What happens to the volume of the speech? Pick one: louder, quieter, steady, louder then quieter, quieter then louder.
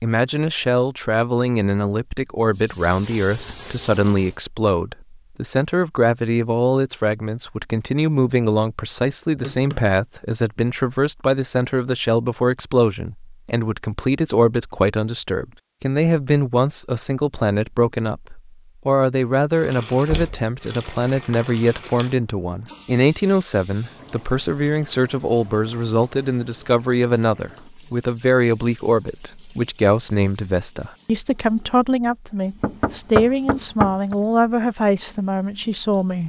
steady.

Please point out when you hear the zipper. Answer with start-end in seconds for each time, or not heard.
not heard.